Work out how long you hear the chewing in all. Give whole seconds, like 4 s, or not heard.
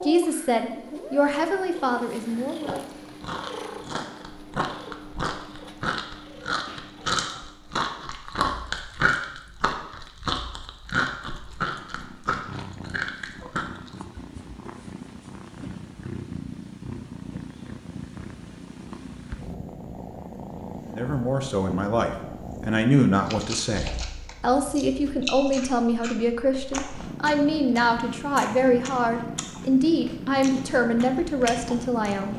20 s.